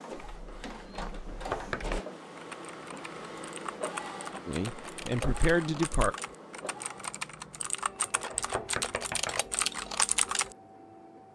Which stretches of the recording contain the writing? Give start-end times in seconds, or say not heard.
not heard.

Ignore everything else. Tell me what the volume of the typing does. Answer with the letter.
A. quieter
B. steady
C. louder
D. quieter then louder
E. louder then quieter
C.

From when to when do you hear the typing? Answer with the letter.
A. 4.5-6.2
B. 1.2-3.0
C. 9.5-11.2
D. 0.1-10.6
D.